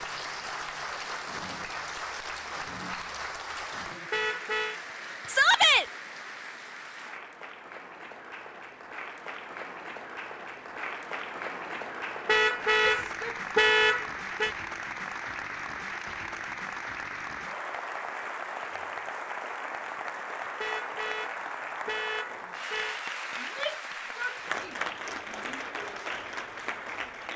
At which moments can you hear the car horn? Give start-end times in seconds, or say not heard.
4.1-4.8, 12.2-14.6, 20.6-23.0.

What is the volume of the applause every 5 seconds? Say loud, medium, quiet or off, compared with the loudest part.
loud, medium, loud, loud, loud, loud.